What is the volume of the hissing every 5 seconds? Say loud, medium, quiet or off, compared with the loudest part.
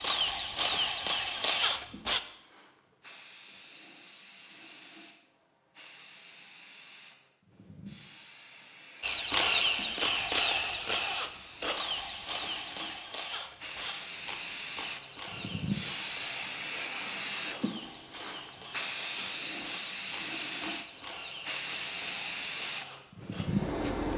quiet, quiet, medium, loud, loud.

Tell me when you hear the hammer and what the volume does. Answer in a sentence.
The hammer can't be heard in this clip.